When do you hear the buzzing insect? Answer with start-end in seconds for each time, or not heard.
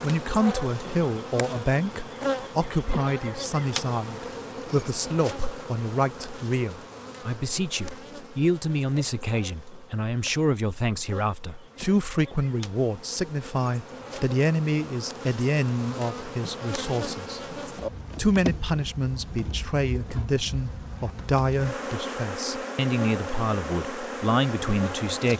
0.0-25.3.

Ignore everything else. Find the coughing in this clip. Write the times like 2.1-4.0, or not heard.
not heard.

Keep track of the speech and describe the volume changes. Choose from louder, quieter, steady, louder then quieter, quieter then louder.
steady.